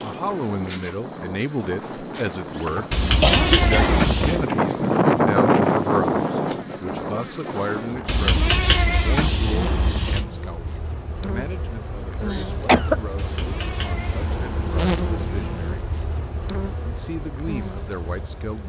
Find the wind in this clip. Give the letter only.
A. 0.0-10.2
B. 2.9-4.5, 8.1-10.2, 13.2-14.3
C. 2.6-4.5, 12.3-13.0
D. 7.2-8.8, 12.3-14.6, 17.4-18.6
A.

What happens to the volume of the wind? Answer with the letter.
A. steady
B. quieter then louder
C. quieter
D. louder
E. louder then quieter
E.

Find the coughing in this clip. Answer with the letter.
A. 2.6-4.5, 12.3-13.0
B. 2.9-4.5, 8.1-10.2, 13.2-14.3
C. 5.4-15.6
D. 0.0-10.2
A.